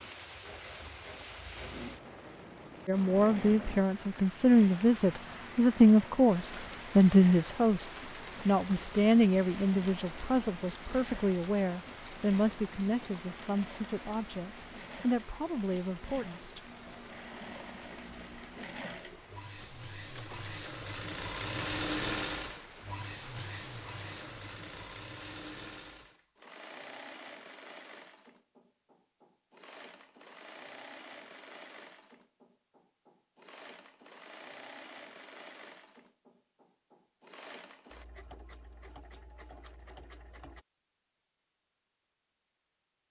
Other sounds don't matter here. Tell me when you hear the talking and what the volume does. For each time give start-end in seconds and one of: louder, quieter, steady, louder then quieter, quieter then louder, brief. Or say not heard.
2.9-16.6 quieter.